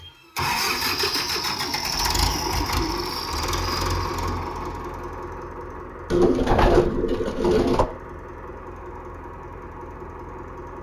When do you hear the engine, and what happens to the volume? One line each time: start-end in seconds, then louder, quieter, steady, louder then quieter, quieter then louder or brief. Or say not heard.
0.0-10.7 quieter.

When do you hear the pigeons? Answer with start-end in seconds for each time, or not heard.
0.7-3.1, 6.1-7.9.